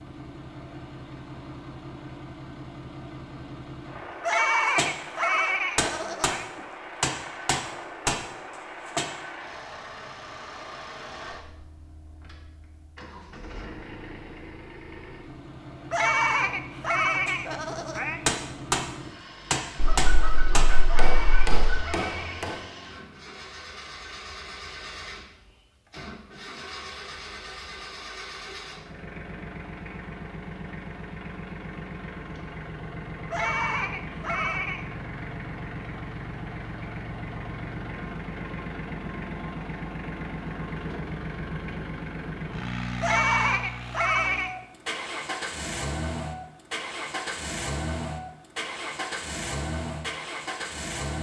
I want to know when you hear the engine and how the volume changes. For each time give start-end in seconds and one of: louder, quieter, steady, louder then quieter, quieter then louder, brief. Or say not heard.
0.0-51.1 louder.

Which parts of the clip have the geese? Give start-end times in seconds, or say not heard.
19.8-21.8.